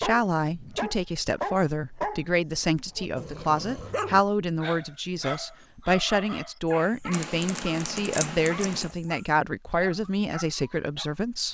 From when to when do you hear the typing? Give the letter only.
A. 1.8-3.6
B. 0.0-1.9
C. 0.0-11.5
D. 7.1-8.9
D.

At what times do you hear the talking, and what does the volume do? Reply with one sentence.
You can hear the talking from 0.0 to 11.5 s, at a steady volume.